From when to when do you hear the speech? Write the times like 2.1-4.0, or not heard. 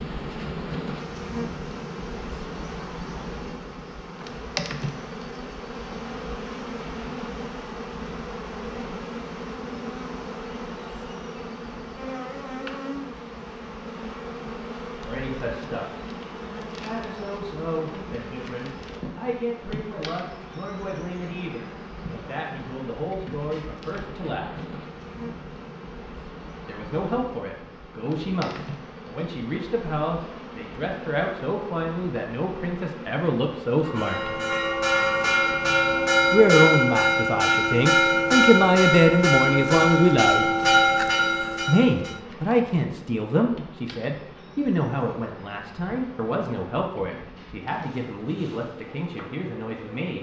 15.0-16.1, 16.8-24.8, 26.6-34.3, 36.3-40.5, 41.6-50.1.